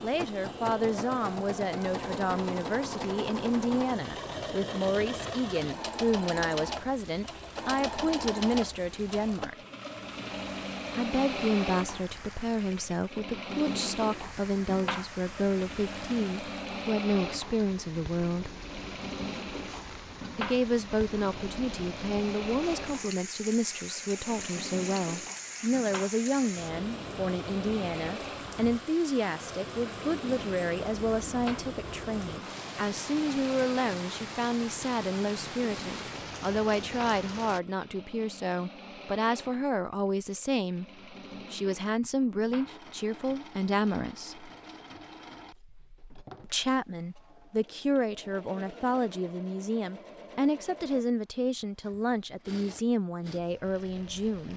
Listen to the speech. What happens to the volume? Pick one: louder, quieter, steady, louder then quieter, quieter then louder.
steady.